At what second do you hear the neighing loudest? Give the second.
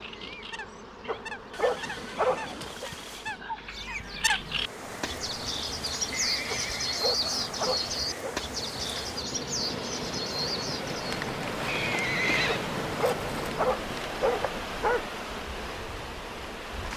12 s.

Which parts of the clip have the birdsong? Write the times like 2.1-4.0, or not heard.
0.0-11.2.